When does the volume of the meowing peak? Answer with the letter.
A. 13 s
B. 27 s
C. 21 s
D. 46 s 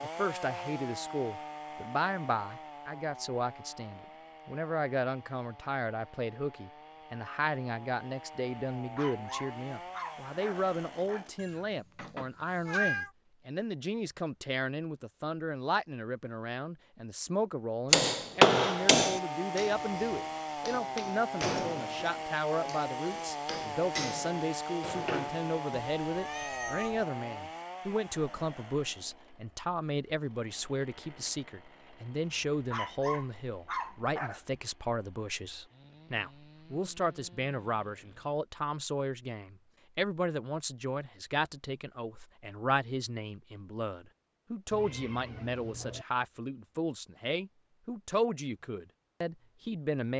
A.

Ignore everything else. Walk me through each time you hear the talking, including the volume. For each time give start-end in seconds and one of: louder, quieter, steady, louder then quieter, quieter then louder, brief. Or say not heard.
0.0-50.1 steady.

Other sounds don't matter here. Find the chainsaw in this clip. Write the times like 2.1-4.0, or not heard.
0.0-11.4, 18.6-38.4.